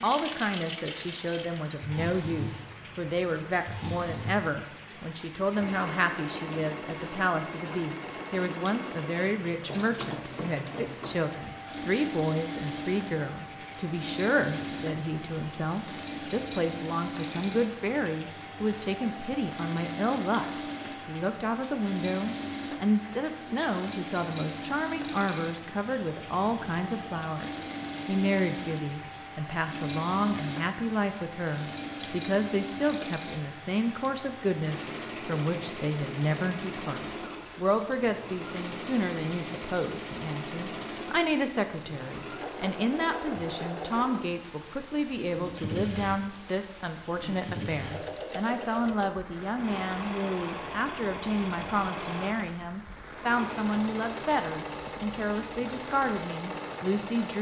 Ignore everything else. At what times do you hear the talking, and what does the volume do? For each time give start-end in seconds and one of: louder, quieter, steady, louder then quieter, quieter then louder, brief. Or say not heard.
0.0-57.3 steady.